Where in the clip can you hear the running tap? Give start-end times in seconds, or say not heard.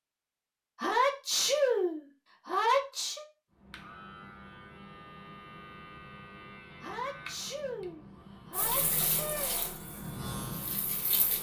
8.5-11.3.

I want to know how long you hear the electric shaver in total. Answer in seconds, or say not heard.
8 s.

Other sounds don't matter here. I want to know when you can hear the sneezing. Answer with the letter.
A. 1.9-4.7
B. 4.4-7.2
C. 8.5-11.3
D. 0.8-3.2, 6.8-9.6
D.